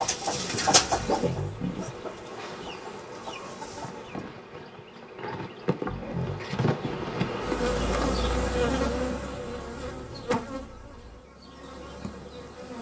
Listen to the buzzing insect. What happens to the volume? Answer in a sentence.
The volume of the buzzing insect goes up, then down.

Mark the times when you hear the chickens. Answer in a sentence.
You can hear the chickens from 0.0 to 4.2 s.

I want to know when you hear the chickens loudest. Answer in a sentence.
The volume of the chickens peaks at 1 second.